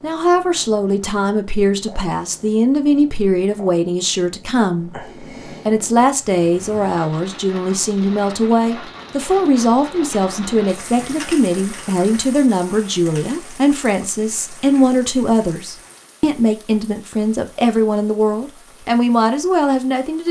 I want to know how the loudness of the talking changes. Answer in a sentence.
The loudness of the talking stays about the same.